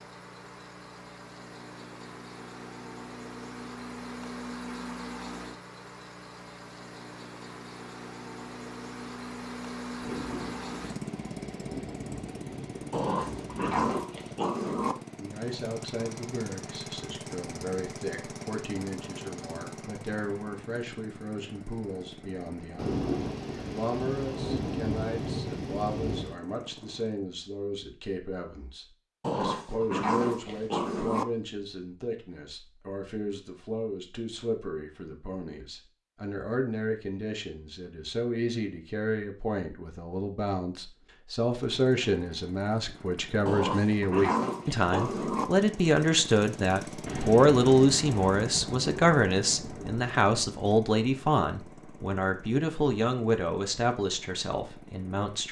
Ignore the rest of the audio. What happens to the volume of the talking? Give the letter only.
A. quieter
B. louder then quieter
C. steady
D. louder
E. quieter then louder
D.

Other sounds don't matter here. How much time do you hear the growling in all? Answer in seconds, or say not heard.
6 s.